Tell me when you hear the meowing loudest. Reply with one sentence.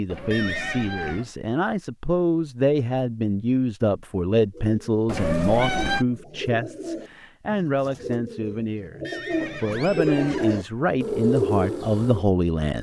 The volume of the meowing peaks at 6 seconds.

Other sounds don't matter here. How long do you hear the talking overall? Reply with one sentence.
The talking can be heard for 13 seconds in total.